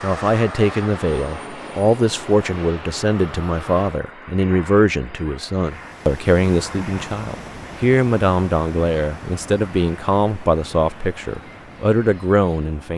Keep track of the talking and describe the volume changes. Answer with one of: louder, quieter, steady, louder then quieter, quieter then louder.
steady.